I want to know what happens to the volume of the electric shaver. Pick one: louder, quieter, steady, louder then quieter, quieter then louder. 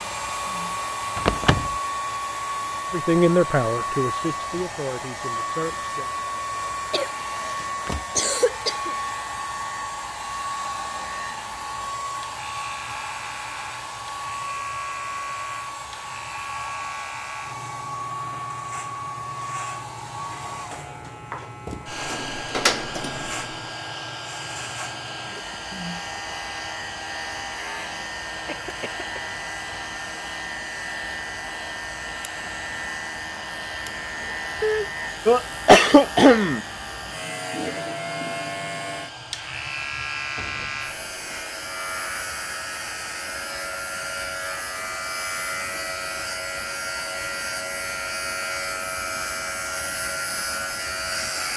louder.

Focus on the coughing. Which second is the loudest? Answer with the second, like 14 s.
36 s.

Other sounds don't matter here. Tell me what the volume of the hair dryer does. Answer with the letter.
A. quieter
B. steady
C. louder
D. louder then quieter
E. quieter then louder
A.